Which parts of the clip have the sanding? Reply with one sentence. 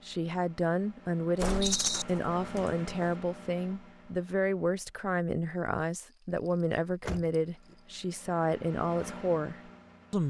You can't hear the sanding here.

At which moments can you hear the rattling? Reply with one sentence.
The rattling can be heard from 1.6 to 2.0 s and from 6.3 to 7.8 s.